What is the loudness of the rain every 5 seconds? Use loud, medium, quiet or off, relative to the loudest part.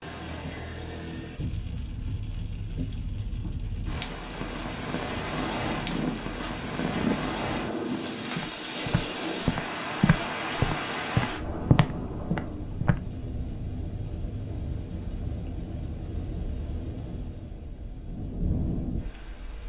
medium, loud, loud, medium.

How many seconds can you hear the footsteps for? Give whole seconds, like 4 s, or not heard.
7 s.